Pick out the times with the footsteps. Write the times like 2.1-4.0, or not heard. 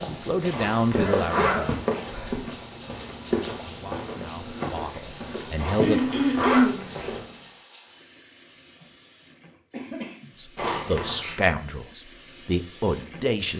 0.0-7.4.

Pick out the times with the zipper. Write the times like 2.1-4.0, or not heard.
0.5-2.1, 5.5-7.2, 10.6-11.2.